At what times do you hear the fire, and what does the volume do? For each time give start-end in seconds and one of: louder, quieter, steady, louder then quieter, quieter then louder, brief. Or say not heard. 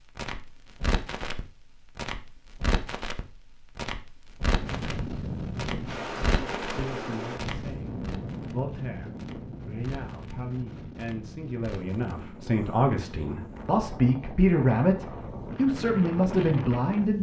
0.0-12.3 quieter.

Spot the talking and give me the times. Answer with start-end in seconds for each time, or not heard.
6.7-17.1.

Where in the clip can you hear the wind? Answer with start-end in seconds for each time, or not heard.
4.6-17.1.